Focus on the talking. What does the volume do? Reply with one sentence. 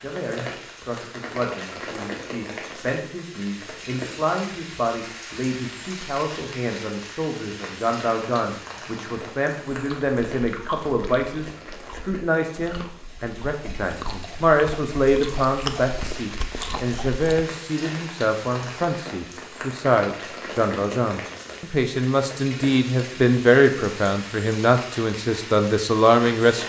The loudness of the talking goes up.